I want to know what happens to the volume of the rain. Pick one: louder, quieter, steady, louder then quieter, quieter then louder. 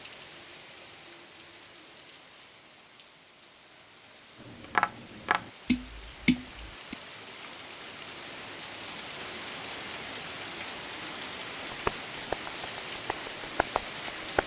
louder.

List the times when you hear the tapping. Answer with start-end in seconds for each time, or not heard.
4.5-7.0, 11.7-14.4.